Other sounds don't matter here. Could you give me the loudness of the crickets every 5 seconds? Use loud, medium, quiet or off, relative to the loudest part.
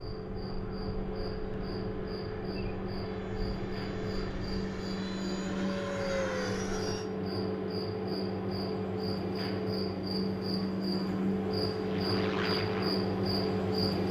medium, loud, loud.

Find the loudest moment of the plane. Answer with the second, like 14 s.
6 s.